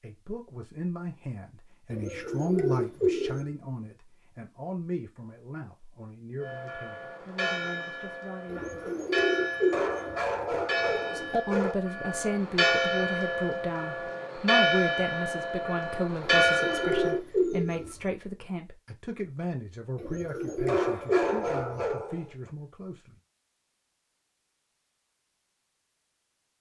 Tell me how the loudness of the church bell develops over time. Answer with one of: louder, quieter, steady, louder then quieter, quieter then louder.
louder.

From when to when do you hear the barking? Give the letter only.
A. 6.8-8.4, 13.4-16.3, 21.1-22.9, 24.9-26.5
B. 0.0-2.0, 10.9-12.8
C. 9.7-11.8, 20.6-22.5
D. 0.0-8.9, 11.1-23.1
C.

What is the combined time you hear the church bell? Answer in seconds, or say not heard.
11 s.